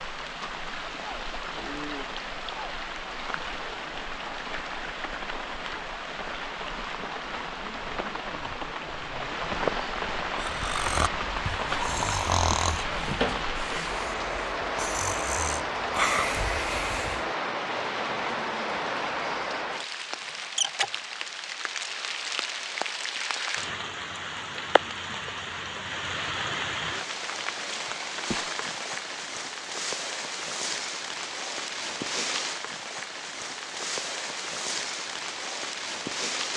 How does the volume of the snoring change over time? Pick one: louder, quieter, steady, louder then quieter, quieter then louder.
quieter then louder.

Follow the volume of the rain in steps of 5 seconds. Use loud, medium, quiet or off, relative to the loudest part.
medium, loud, loud, loud, loud, loud, loud, loud.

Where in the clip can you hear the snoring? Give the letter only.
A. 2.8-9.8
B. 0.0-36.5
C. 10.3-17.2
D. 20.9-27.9
C.